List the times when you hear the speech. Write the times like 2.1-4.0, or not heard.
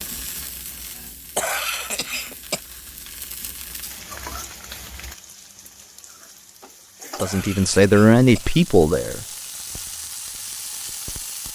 7.2-9.2.